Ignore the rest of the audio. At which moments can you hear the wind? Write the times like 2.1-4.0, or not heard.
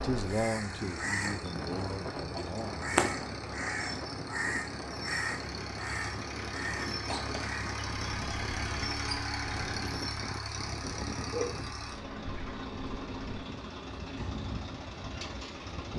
0.0-15.9.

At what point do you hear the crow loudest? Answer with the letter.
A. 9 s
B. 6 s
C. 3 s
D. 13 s
C.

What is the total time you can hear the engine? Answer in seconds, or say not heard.
16 s.